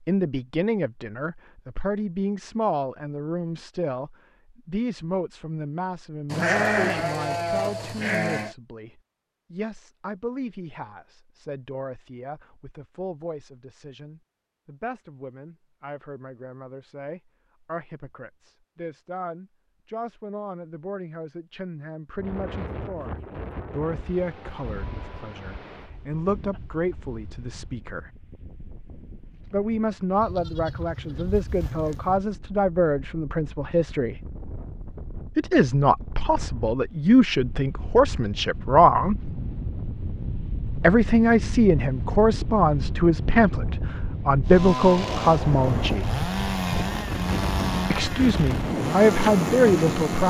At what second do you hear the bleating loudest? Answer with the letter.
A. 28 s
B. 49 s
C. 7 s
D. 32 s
C.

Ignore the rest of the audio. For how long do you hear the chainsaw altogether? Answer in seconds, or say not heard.
6 s.